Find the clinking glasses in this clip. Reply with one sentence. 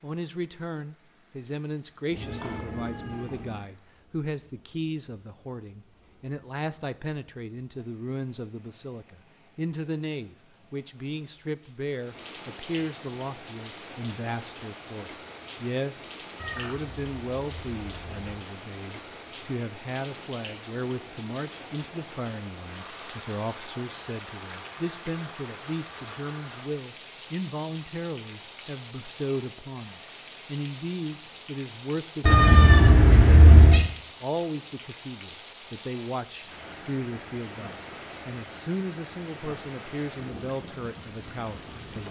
You can't hear the clinking glasses here.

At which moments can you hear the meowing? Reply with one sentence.
You can hear the meowing from 2.1 to 3.6 s, from 16.4 to 18.4 s and from 32.2 to 33.9 s.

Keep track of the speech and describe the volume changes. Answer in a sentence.
The volume of the speech stays about the same.